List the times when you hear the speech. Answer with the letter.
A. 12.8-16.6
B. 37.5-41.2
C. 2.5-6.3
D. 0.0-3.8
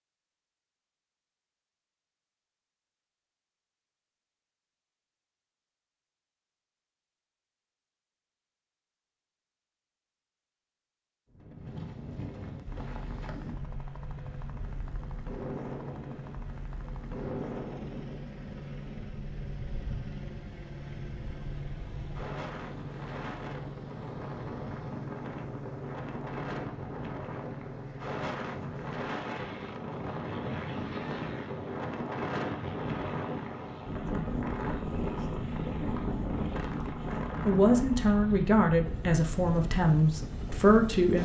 B.